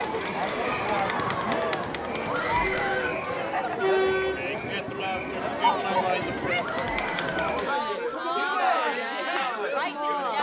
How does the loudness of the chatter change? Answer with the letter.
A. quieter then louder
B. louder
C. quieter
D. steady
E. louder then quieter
D.